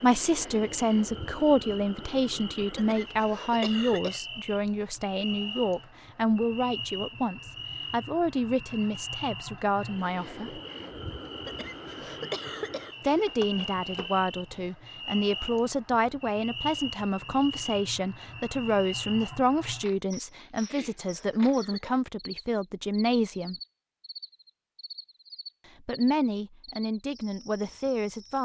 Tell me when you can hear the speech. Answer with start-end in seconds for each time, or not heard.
0.0-10.6, 13.0-23.6, 25.8-28.4.